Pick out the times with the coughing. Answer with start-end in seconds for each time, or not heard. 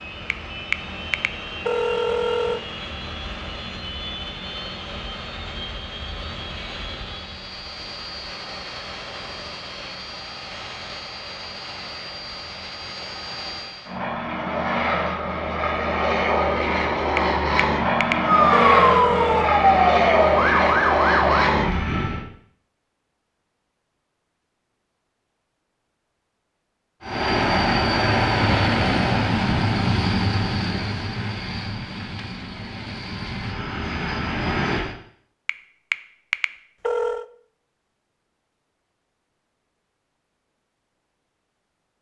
not heard.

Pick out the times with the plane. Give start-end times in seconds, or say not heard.
0.0-22.2, 27.0-35.0.